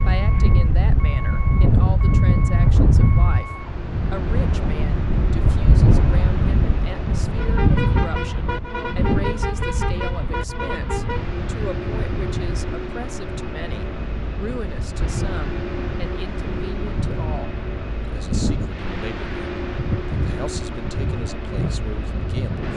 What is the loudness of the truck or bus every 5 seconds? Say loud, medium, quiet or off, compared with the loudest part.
medium, loud, loud, loud, loud.